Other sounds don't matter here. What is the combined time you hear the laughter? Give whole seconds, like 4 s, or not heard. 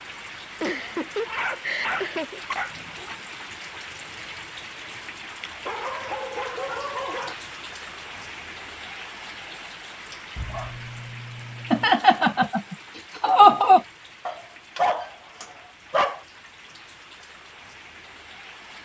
4 s.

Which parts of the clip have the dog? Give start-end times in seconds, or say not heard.
1.2-3.1, 5.7-7.3, 10.3-11.9, 14.2-16.2.